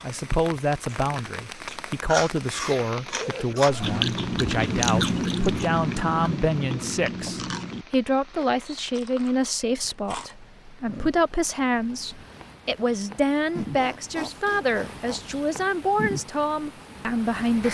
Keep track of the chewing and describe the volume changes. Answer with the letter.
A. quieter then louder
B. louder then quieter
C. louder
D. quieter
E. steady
B.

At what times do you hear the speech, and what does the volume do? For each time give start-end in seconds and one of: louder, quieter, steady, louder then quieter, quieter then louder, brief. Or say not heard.
0.0-17.6 steady.